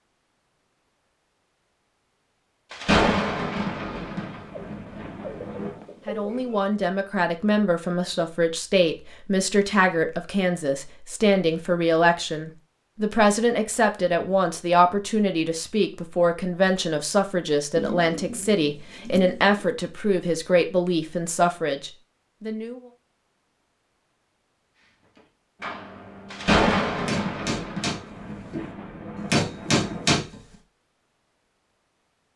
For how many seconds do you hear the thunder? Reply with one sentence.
The thunder can be heard for 7 seconds in total.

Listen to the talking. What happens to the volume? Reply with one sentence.
The loudness of the talking stays about the same.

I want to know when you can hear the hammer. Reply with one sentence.
The hammer can be heard from 24.8 to 28.6 s and from 29.3 to 30.4 s.